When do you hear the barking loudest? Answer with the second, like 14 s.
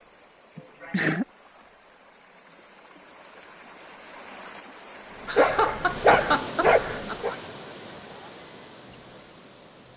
6 s.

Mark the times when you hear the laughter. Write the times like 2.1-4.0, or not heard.
0.6-1.2, 5.2-7.3.